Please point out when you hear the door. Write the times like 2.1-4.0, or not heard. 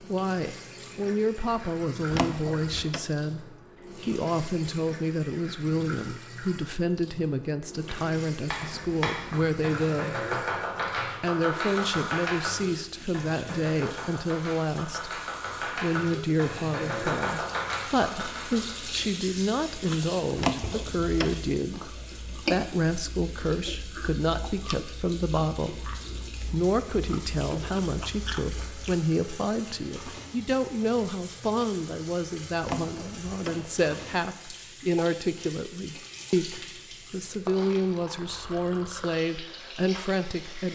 2.1-3.0, 20.4-21.4, 32.6-33.6.